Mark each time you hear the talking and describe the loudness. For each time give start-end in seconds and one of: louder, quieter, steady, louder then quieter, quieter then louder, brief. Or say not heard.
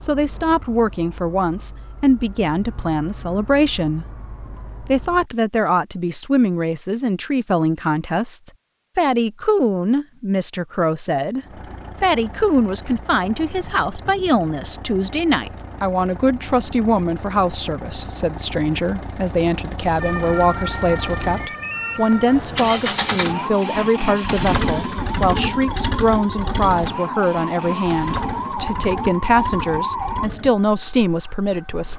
0.0-31.9 steady.